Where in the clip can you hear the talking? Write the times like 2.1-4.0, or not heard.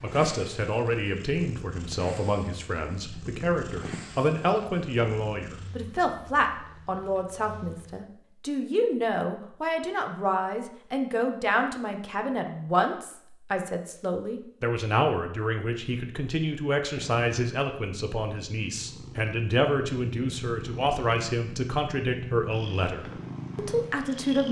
0.0-24.4.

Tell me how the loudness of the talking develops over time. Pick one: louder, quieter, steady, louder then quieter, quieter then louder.
steady.